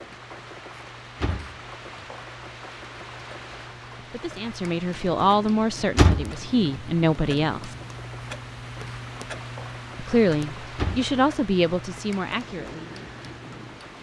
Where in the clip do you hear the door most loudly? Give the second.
6 s.